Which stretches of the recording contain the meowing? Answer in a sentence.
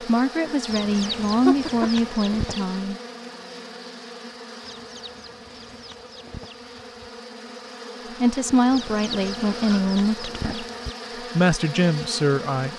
You can hear the meowing from 0.9 to 1.9 s.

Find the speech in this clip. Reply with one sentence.
You can hear the speech from 0.0 to 3.0 s, from 8.2 to 10.7 s and from 11.3 to 12.7 s.